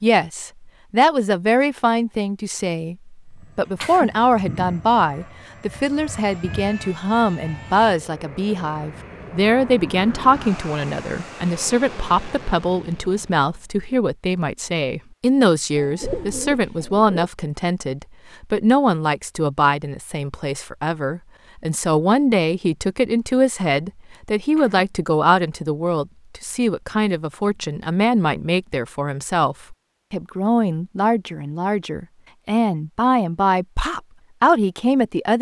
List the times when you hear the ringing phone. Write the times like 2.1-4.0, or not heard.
not heard.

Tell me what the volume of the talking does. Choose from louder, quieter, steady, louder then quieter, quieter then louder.
steady.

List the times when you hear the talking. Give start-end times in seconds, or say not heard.
0.0-35.3.